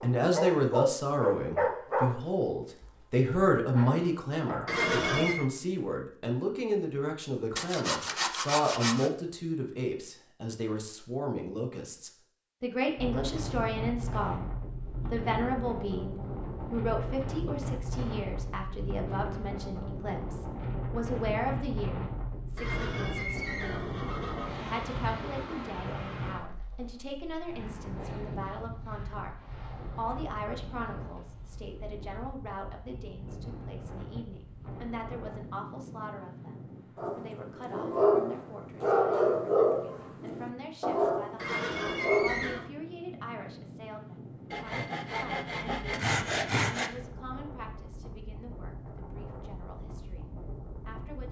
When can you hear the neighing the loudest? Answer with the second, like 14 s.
5 s.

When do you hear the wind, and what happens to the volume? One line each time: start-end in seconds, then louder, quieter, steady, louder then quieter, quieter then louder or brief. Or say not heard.
12.9-51.2 quieter.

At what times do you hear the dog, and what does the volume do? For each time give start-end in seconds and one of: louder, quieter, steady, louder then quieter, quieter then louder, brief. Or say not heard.
0.0-5.3 quieter then louder
37.0-42.4 quieter.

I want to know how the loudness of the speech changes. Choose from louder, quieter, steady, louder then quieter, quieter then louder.
quieter.